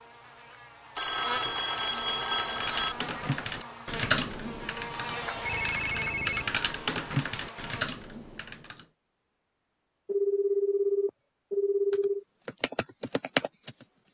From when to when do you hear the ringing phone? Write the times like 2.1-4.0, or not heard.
0.9-3.0, 5.3-6.5, 10.1-12.2.